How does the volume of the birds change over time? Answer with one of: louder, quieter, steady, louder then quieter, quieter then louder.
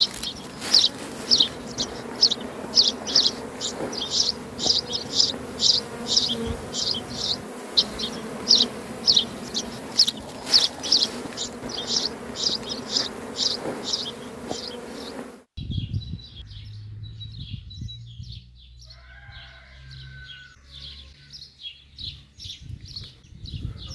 quieter.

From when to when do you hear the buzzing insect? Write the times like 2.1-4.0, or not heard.
0.0-15.4.